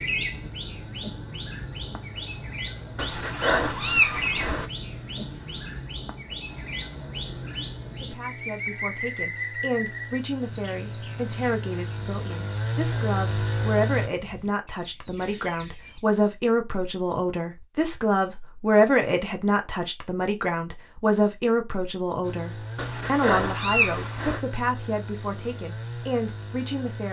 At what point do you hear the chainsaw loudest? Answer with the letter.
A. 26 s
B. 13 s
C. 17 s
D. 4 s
B.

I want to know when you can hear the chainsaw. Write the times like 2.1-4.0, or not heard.
0.0-14.1, 22.2-27.0.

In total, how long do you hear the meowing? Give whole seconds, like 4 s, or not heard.
3 s.